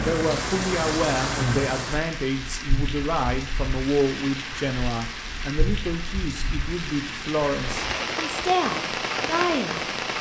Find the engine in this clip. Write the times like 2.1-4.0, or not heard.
0.0-1.9.